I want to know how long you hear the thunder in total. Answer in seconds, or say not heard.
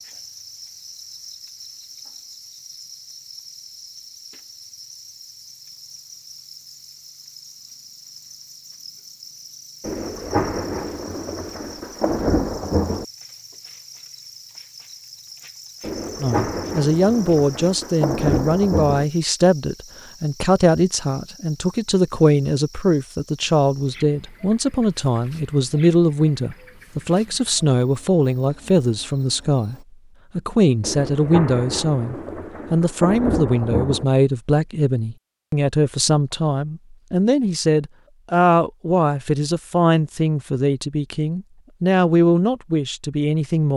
10 s.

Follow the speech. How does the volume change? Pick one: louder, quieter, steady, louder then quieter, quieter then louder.
steady.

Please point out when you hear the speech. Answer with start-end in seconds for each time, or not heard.
16.2-29.8, 30.4-43.7.